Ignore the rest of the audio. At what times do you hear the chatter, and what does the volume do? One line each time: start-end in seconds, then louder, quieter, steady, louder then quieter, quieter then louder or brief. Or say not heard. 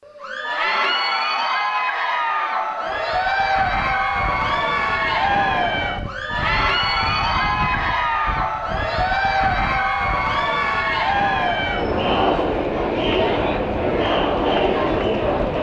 0.1-15.5 steady.